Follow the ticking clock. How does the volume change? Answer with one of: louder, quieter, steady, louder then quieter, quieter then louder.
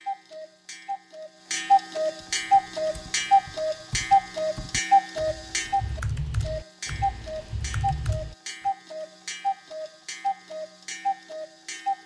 quieter.